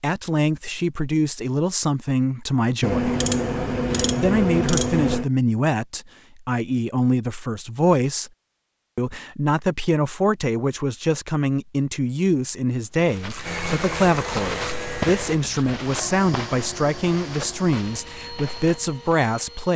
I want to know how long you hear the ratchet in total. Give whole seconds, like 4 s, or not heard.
4 s.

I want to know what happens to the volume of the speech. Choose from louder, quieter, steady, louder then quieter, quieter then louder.
steady.